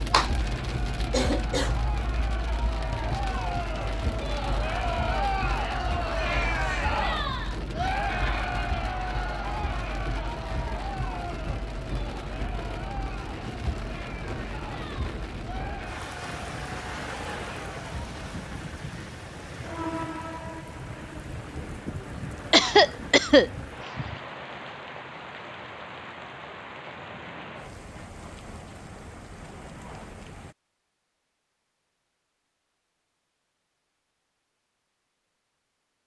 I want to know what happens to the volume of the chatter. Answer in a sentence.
The volume of the chatter goes up, then down.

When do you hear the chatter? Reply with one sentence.
You can hear the chatter from 0.1 to 18.3 s.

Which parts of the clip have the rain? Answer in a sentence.
You can hear the rain from 0.0 to 30.6 s.